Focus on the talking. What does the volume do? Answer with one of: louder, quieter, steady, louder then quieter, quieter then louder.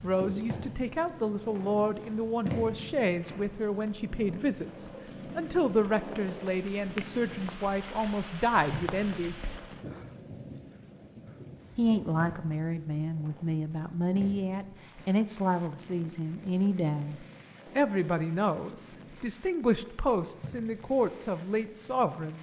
steady.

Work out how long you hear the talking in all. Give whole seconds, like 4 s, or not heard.
20 s.